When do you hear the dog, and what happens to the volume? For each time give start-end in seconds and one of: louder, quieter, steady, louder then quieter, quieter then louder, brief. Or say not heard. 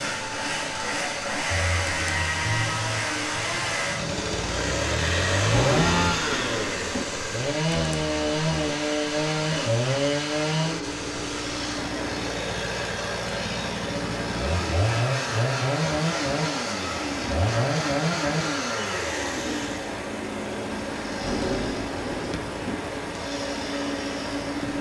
not heard.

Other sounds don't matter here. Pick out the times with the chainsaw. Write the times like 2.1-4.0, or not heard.
0.0-24.7.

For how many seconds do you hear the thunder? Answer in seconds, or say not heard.
3 s.